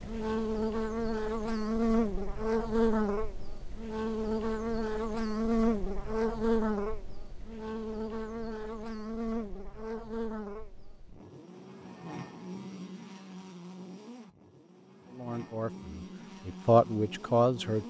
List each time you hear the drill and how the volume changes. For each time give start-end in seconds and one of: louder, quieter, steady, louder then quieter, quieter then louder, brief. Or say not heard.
not heard.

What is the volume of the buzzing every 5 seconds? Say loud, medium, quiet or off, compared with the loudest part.
loud, loud, quiet, quiet.